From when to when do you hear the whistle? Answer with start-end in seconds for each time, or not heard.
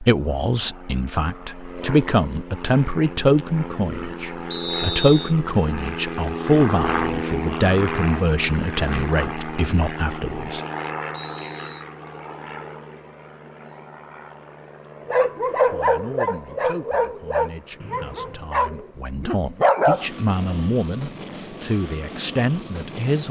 4.5-5.3, 11.1-11.8, 17.8-18.6.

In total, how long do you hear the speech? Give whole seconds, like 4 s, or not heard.
18 s.